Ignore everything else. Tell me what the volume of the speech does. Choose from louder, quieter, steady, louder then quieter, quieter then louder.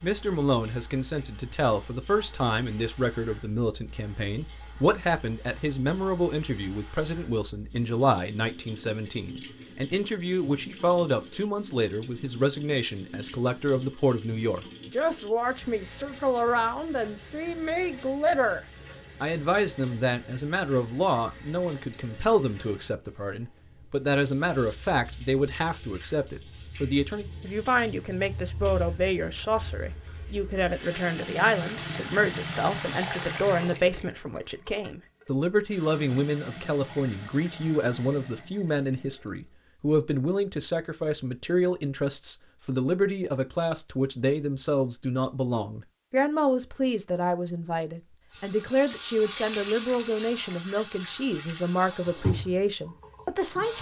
steady.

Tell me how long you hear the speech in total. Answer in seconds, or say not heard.
53 s.